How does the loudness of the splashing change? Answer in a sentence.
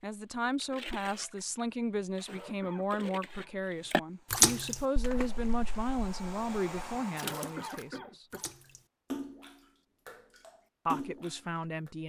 The volume of the splashing goes up, then down.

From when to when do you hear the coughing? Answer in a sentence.
The coughing can be heard from 2.2 to 3.5 s and from 7.2 to 8.5 s.